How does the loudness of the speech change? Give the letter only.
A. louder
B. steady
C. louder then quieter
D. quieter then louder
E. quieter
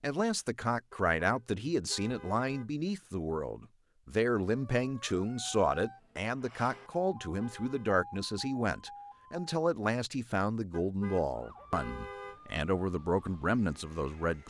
B.